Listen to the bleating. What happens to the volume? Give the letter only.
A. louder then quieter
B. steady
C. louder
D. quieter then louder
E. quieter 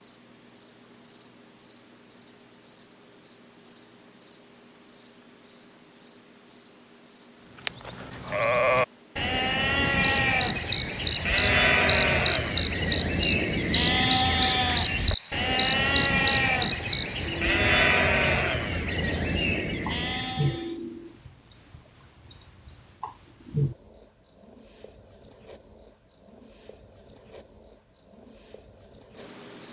B.